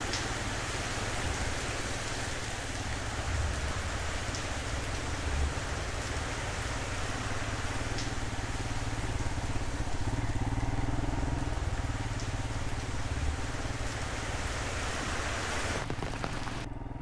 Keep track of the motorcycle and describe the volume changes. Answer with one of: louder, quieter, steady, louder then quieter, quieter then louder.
louder then quieter.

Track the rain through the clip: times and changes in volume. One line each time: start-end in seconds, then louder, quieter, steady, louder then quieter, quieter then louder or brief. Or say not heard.
0.0-16.6 quieter then louder.